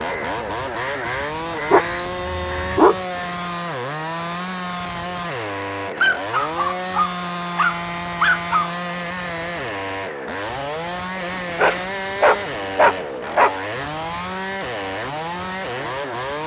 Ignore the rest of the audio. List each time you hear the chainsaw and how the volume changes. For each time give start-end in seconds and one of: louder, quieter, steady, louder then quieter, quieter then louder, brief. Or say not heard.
0.0-16.4 steady.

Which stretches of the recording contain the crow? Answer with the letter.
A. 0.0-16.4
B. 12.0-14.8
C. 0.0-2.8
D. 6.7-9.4
C.